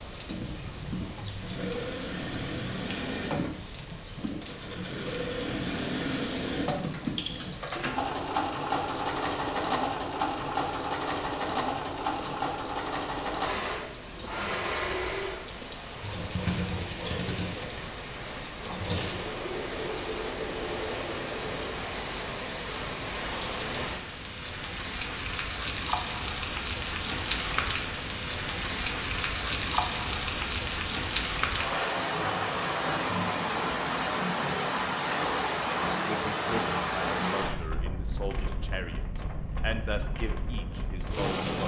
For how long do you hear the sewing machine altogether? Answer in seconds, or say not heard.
22 s.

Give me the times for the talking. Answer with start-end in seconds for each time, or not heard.
36.0-41.6.